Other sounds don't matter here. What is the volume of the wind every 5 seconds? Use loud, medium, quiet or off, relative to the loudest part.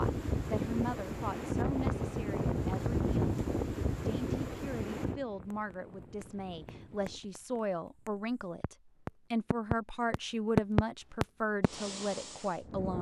loud, quiet, off.